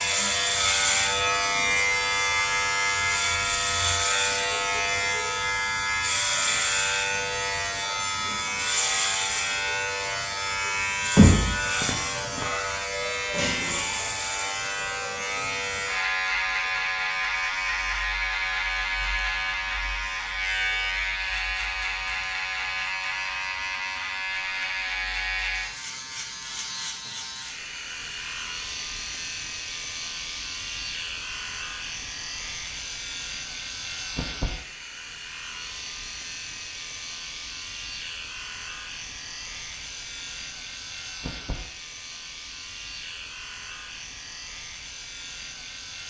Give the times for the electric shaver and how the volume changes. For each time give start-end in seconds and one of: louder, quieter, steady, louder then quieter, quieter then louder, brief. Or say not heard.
0.0-46.0 quieter.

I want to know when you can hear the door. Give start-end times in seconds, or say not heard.
11.2-12.4.